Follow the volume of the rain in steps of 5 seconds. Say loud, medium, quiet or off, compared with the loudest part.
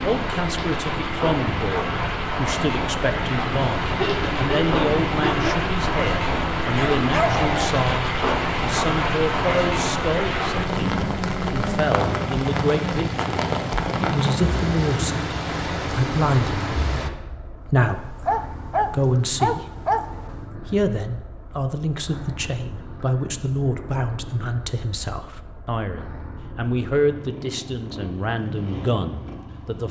loud, loud, loud, loud, off, off.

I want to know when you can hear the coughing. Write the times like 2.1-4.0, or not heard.
4.0-5.7.